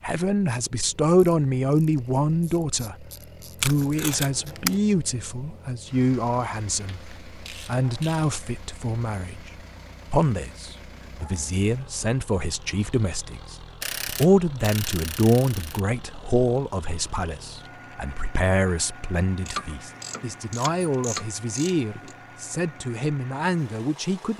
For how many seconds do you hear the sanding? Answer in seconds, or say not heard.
not heard.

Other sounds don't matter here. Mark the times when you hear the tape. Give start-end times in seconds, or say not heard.
3.6-4.8.